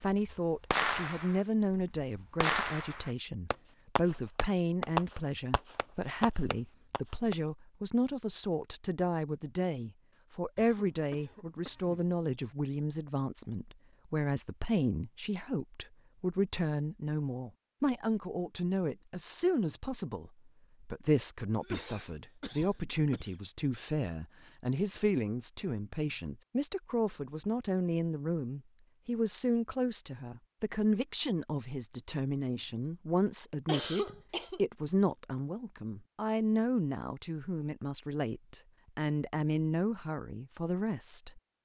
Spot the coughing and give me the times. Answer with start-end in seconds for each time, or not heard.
10.6-12.1, 21.6-23.4, 33.6-34.6.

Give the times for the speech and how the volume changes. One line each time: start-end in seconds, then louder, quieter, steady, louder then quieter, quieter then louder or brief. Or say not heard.
0.0-41.4 steady.